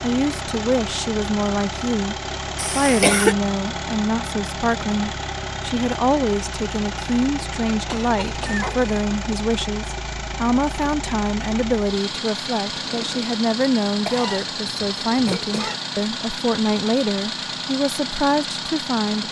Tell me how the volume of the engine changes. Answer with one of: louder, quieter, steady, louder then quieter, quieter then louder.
steady.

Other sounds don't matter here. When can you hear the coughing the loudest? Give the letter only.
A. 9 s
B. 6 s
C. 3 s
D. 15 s
C.